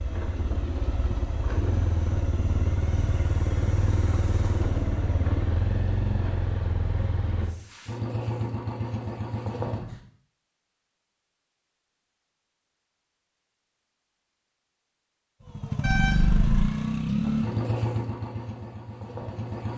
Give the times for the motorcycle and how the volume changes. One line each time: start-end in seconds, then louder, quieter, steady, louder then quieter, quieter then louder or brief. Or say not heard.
0.0-10.1 steady
15.4-19.7 quieter.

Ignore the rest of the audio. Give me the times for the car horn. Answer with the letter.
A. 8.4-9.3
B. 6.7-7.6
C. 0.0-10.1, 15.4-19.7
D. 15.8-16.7
D.